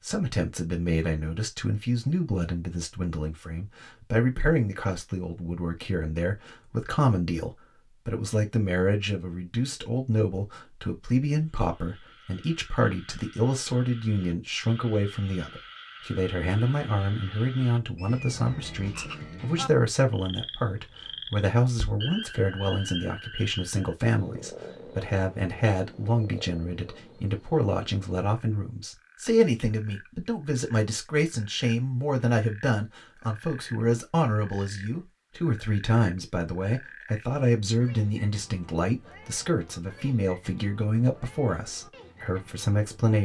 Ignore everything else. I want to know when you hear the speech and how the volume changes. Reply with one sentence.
The speech can be heard from 0.0 to 43.1 s, at a steady volume.